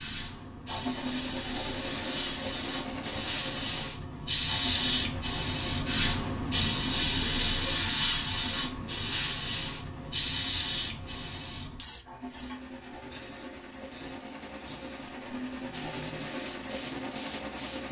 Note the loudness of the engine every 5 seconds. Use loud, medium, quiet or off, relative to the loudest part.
loud, medium, medium, loud.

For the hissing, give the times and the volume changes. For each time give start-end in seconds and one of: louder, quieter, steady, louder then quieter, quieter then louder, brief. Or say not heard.
0.0-17.8 louder then quieter.